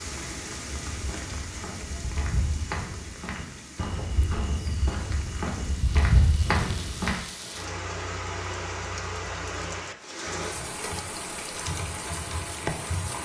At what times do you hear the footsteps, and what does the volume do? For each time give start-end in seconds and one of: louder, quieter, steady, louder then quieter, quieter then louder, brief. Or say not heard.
0.7-7.2 louder.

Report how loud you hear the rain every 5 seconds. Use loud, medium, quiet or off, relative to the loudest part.
medium, loud, loud.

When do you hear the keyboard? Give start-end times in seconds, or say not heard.
10.5-13.2.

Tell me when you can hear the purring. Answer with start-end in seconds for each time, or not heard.
not heard.